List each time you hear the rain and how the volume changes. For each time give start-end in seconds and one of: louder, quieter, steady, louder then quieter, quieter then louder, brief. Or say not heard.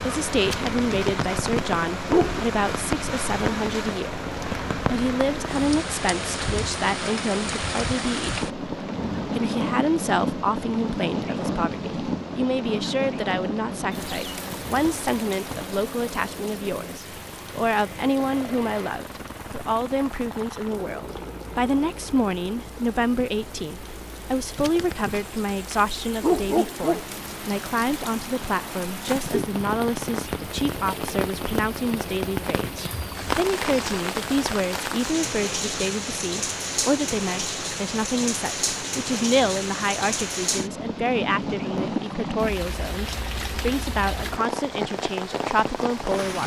0.0-46.4 quieter then louder.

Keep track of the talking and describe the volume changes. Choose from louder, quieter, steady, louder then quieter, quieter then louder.
steady.